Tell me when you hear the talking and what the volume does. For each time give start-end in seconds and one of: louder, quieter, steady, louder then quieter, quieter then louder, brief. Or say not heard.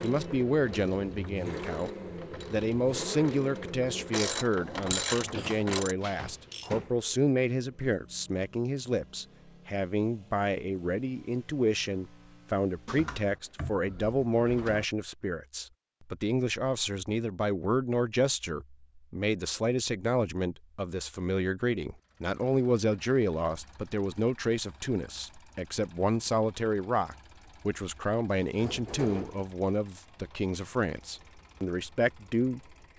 0.0-1.9 brief
2.5-32.6 steady.